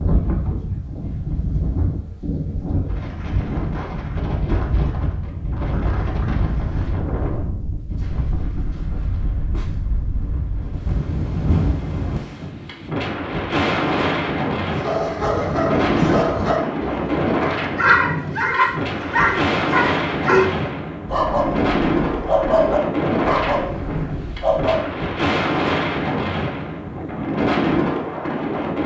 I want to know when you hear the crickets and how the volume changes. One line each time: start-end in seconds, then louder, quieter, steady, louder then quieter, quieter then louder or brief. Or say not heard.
not heard.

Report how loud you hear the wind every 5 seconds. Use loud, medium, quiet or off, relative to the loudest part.
medium, medium, loud, loud, loud, loud.